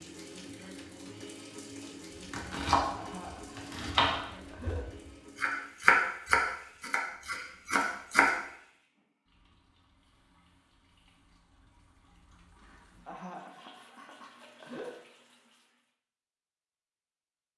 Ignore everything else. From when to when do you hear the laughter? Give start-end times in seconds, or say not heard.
3.0-4.8, 13.1-14.9.